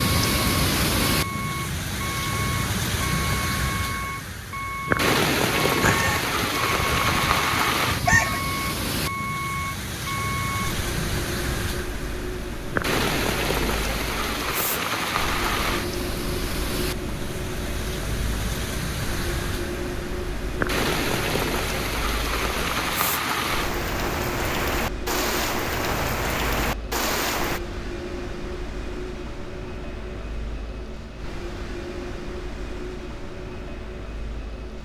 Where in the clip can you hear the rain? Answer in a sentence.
The rain can be heard from 0.0 to 27.6 s.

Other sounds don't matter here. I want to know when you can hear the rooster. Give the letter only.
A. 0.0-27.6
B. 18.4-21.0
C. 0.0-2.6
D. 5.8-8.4
D.